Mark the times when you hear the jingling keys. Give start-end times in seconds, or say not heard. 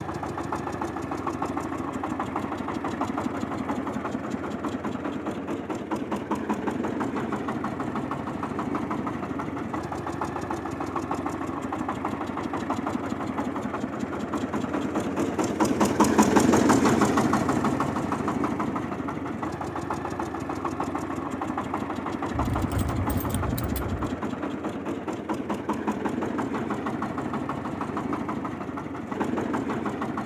22.3-24.2.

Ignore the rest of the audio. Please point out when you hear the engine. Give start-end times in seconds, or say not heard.
0.0-30.2.